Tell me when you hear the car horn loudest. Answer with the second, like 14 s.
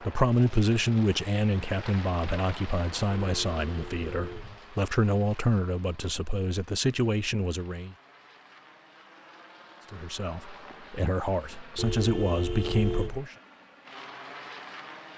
13 s.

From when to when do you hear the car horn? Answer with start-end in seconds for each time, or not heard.
3.1-4.6, 11.8-13.2.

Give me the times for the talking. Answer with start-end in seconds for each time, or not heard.
0.0-8.0, 9.9-13.3.